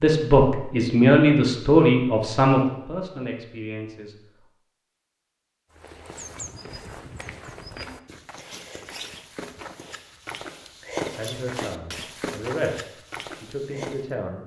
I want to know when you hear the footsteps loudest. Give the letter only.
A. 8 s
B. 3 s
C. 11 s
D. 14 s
C.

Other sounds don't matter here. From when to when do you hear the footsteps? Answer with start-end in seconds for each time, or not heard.
5.7-14.1.